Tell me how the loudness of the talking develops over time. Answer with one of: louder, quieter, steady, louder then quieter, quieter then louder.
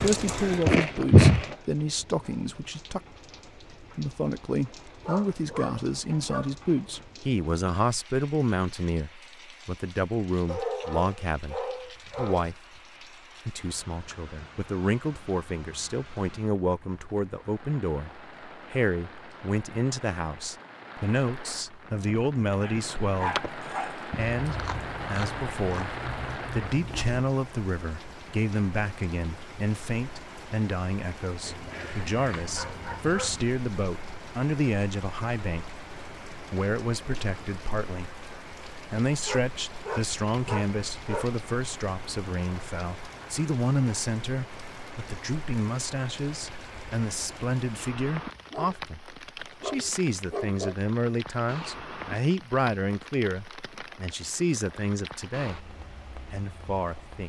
steady.